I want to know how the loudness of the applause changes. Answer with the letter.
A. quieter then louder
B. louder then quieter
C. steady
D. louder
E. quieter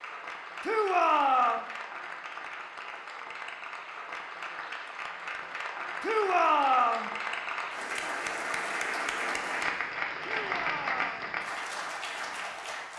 D.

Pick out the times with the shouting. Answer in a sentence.
You can hear the shouting from 0.6 to 1.6 s, from 6.0 to 7.1 s and from 10.2 to 11.3 s.